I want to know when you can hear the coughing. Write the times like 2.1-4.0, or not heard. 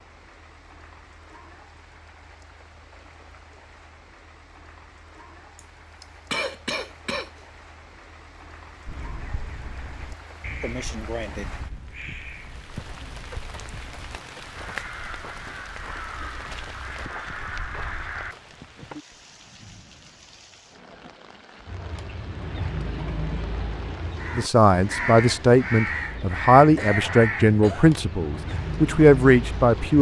5.5-7.3, 10.6-11.6, 26.8-27.9.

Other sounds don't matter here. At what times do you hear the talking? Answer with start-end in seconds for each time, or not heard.
24.4-29.9.